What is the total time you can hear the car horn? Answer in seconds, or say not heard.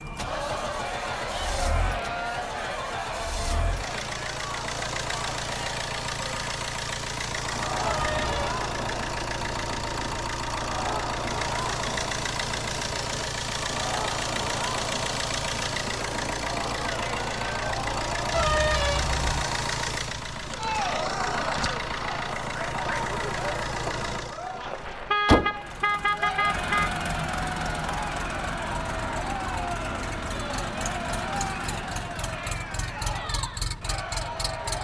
4 s.